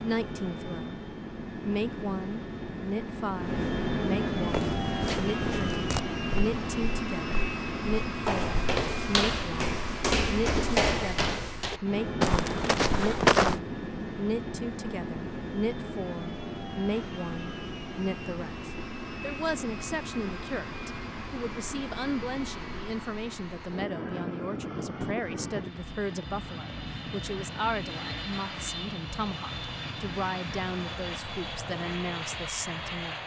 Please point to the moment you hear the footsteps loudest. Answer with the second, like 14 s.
13 s.